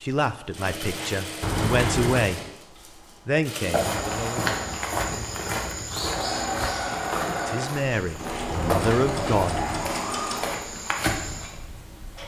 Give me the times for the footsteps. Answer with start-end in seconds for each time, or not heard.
3.6-11.6.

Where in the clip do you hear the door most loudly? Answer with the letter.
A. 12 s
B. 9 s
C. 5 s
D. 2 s
D.